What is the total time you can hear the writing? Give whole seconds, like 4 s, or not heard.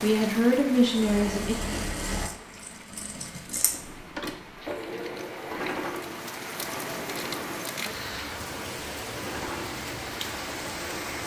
not heard.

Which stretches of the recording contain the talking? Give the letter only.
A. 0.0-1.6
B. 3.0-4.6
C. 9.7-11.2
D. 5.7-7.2
A.